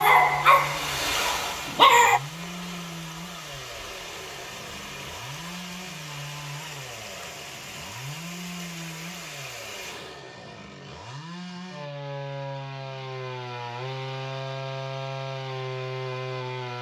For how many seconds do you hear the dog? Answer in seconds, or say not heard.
2 s.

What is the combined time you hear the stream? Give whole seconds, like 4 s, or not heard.
10 s.